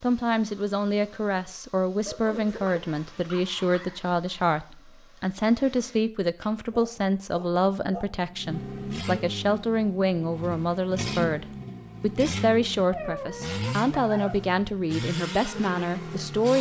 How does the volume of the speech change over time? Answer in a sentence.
The volume of the speech stays about the same.